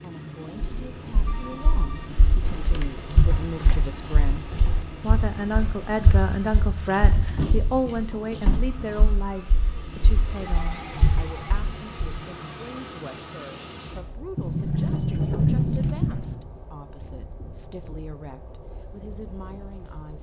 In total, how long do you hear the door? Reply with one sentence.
You can hear the door for 6 seconds altogether.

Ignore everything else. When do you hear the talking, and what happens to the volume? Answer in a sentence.
You can hear the talking from 0.0 to 20.1 s, getting louder then quieter.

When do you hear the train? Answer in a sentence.
You can hear the train from 0.0 to 20.1 s.